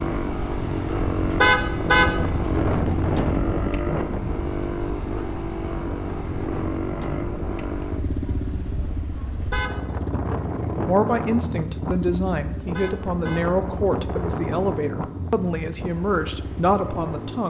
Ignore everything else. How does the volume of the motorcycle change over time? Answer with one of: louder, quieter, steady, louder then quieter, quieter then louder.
quieter.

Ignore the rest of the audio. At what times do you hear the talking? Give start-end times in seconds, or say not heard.
10.8-17.4.